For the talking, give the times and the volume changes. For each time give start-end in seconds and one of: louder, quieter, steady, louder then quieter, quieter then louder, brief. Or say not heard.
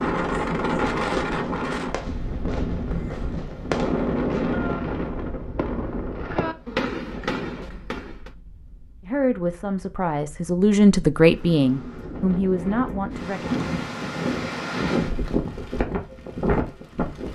9.0-13.7 louder then quieter.